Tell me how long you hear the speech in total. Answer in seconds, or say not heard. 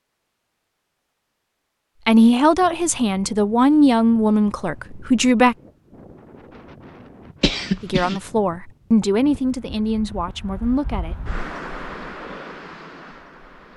7 s.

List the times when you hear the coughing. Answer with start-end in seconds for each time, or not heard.
7.4-8.2.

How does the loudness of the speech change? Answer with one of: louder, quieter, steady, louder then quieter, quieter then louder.
quieter.